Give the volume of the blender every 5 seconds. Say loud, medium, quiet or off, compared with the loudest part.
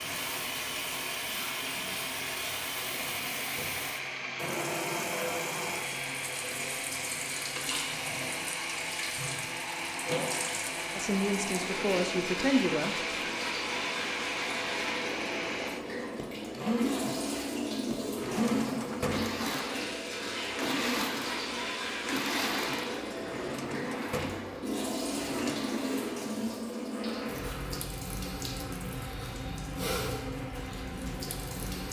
loud, loud, loud, loud, loud, medium, medium.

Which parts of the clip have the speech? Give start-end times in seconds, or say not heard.
10.9-12.9.